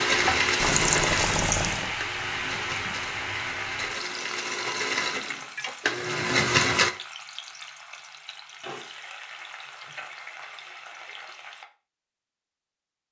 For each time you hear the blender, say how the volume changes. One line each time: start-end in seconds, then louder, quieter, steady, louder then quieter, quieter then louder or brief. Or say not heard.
0.0-6.9 quieter then louder.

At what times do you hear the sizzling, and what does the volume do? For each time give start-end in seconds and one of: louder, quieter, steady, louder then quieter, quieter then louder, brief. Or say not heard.
0.0-11.7 quieter.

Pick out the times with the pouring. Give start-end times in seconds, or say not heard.
0.6-1.9.